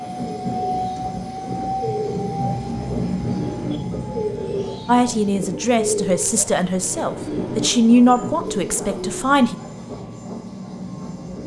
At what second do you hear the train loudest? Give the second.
3 s.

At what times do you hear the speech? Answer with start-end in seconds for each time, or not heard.
4.8-9.6.